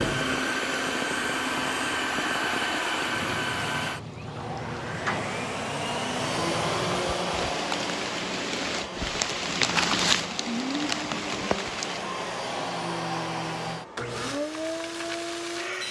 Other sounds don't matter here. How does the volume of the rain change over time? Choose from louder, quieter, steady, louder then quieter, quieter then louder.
louder.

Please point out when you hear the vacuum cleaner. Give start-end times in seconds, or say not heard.
0.0-15.8.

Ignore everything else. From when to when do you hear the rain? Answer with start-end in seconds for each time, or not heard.
0.2-12.1.